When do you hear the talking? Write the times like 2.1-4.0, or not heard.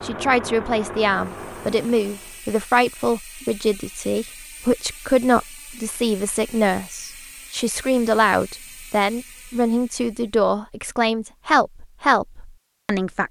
0.0-13.2.